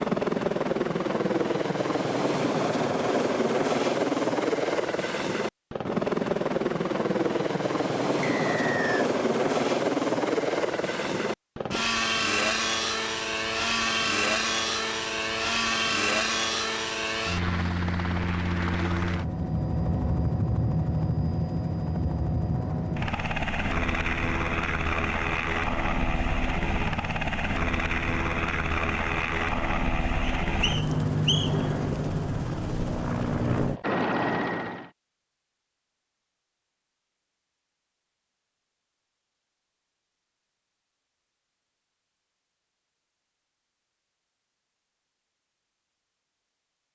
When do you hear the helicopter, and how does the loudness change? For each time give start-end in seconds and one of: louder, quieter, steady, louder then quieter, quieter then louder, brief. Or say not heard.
0.0-34.9 steady.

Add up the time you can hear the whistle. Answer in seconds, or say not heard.
2 s.